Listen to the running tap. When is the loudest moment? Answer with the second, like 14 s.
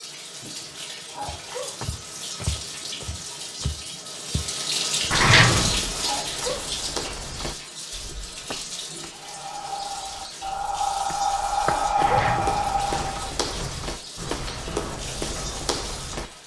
5 s.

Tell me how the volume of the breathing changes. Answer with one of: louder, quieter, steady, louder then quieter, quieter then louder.
louder then quieter.